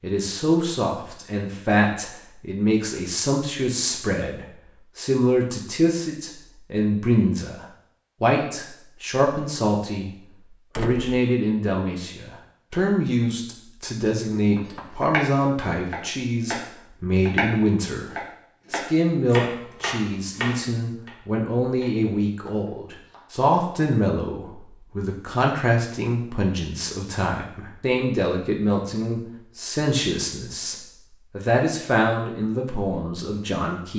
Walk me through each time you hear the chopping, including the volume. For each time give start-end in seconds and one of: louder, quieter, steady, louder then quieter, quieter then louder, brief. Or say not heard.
14.6-15.3 brief
15.9-23.4 quieter.